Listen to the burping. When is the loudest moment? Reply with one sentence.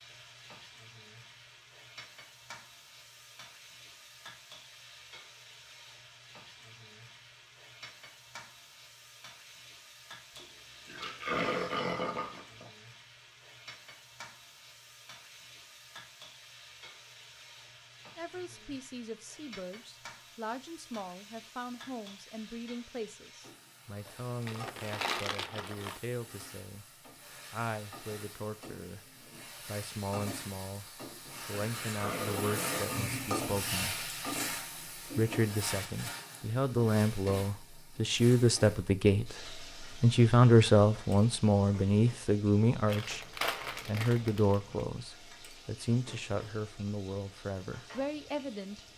The volume of the burping peaks at 11 seconds.